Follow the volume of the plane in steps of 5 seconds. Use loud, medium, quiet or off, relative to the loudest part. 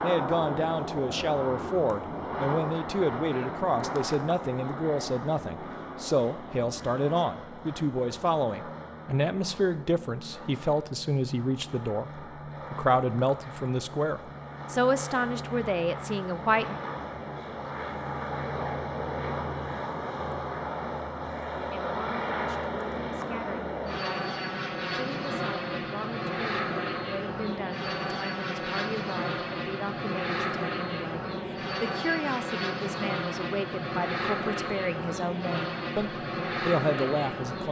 loud, medium, medium, loud, loud, loud, loud, loud.